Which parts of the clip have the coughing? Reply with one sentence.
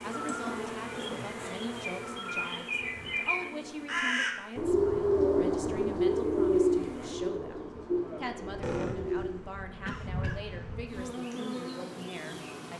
You can hear the coughing from 0.9 to 1.4 s and from 8.6 to 10.4 s.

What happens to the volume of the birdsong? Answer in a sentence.
The loudness of the birdsong goes up, then down.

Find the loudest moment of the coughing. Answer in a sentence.
The volume of the coughing peaks at 9 seconds.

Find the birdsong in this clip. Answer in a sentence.
The birdsong can be heard from 0.1 to 9.4 s.